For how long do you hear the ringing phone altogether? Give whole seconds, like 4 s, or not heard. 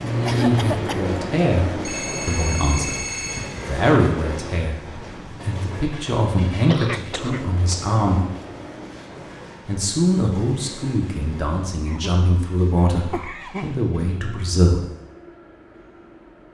2 s.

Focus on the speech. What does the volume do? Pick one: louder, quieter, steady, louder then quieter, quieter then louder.
steady.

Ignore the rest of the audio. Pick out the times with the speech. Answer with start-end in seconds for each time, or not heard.
0.0-8.2, 9.7-14.8.